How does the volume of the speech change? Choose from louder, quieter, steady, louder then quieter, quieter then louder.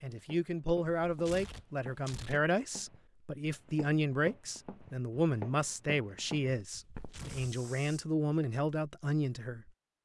steady.